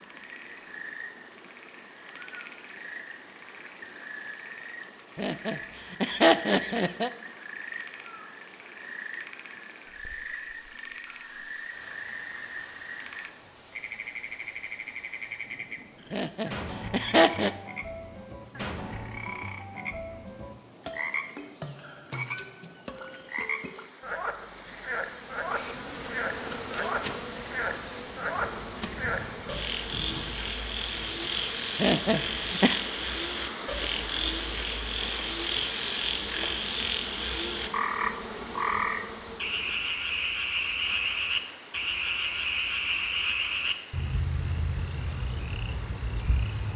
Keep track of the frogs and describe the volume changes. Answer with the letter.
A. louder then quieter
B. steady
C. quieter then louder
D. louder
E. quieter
D.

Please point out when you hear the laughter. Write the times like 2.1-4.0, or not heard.
5.2-7.1, 16.1-17.5, 31.8-32.8.